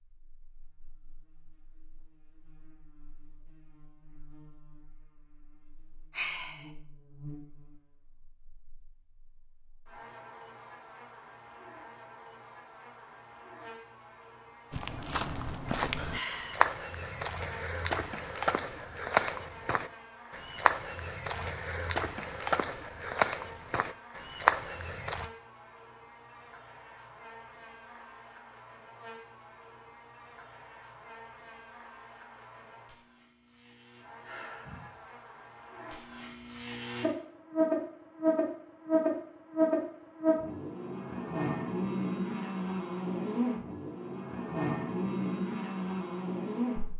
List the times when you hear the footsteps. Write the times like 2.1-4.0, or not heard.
14.7-25.3.